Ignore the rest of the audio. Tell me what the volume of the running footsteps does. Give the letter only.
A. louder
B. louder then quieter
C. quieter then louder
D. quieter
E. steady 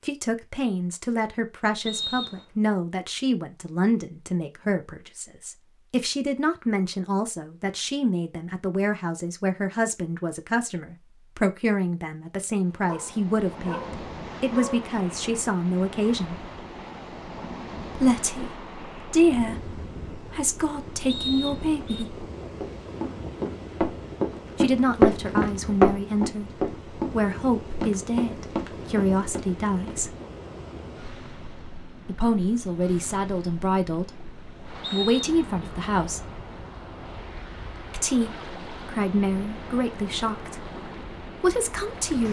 B.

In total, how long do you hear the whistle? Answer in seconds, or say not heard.
2 s.